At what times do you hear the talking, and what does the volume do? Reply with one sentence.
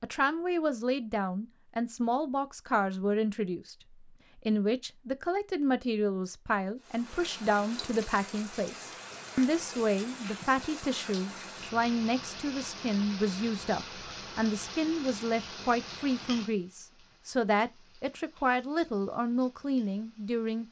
The talking can be heard from 0.0 to 20.6 s, at a steady volume.